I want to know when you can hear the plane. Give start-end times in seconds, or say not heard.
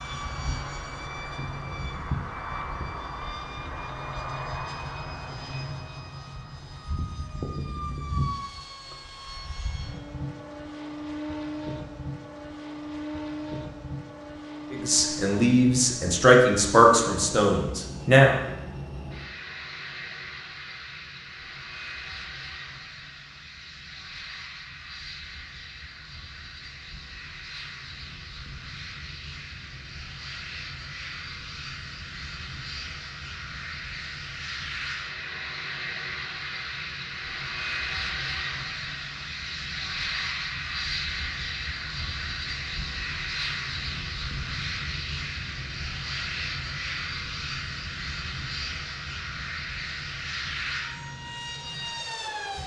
0.0-52.6.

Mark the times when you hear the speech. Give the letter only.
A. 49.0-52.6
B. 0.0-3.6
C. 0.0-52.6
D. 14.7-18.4
D.